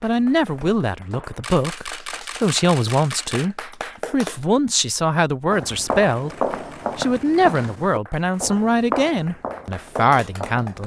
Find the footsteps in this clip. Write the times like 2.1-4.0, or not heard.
0.0-1.6, 5.5-10.8.